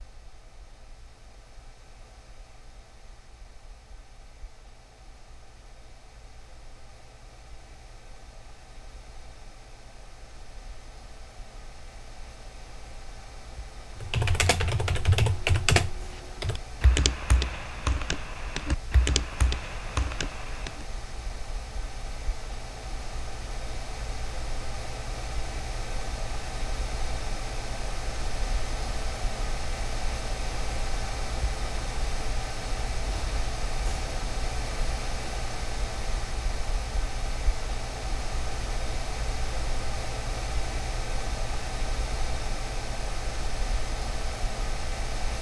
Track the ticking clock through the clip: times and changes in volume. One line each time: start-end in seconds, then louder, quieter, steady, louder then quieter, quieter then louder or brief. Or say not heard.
not heard.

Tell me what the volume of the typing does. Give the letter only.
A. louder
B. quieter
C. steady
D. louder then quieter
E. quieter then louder
B.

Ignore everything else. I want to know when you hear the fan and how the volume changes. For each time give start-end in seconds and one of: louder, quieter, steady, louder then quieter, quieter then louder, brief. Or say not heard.
0.0-45.3 louder.